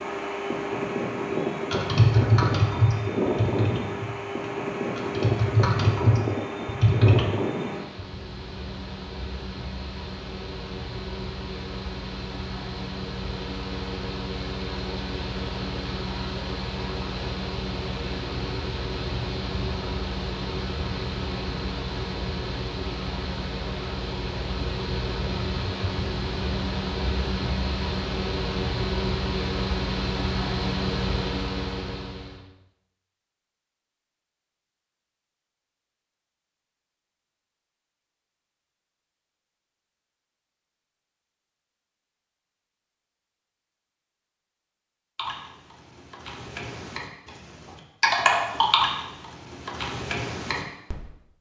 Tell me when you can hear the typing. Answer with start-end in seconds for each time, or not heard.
1.7-7.3, 45.1-51.0.